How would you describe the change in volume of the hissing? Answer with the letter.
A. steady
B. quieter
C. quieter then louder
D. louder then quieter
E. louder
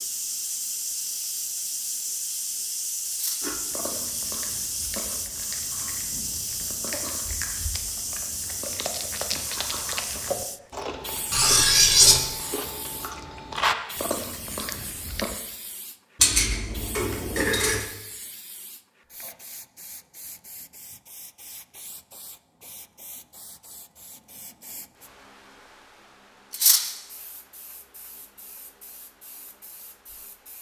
B.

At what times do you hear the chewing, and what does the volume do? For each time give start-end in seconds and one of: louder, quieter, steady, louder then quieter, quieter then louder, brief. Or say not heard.
3.4-15.4 louder.